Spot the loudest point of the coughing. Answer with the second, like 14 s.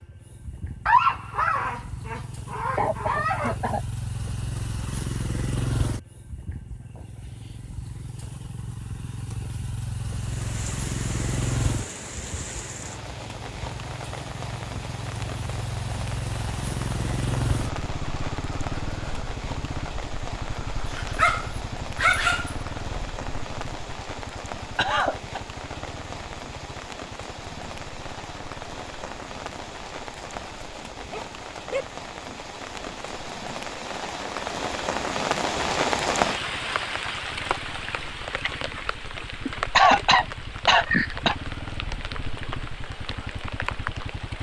40 s.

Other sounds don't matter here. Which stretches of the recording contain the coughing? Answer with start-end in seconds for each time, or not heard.
2.8-3.8, 24.8-25.4, 39.8-41.4.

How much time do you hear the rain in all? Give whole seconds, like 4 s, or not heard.
34 s.